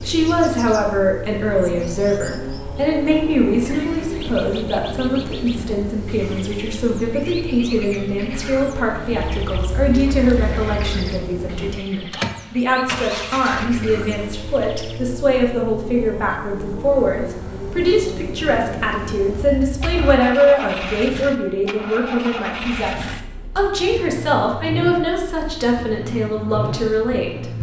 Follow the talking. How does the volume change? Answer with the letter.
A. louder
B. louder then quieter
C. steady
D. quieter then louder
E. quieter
C.